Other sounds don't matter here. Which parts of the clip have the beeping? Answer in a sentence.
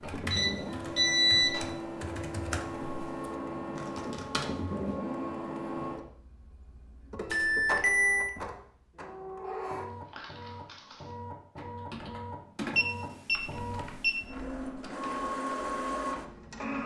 You can hear the beeping from 0.3 to 1.7 s, from 7.2 to 8.3 s and from 12.8 to 14.2 s.